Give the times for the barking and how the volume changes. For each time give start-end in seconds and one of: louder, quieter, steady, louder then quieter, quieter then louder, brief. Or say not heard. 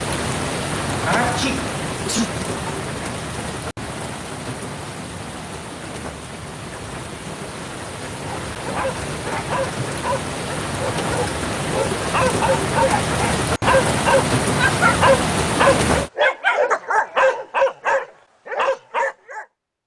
8.2-19.4 louder.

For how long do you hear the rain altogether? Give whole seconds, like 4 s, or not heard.
16 s.